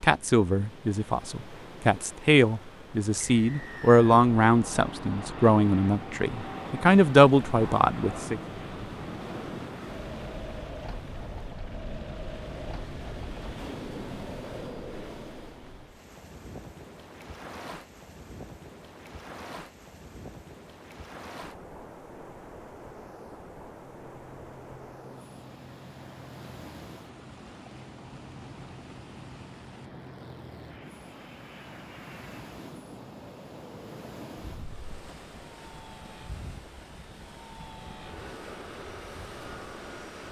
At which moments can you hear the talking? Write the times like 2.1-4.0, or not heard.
0.0-8.4.